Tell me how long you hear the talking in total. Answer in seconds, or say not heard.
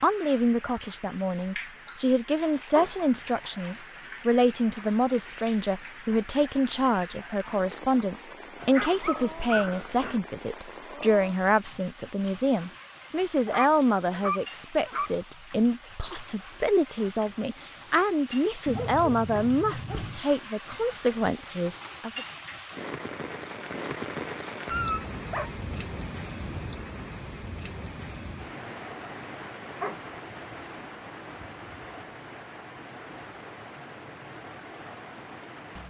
22 s.